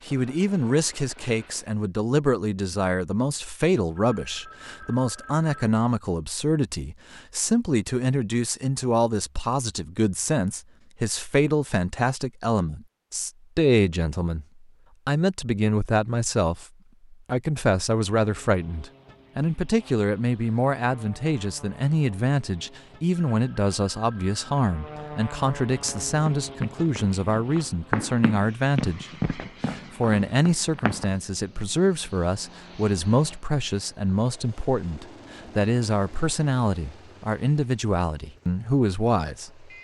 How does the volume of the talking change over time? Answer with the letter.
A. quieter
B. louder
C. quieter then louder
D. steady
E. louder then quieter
D.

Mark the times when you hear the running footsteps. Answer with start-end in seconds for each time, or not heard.
25.9-31.2.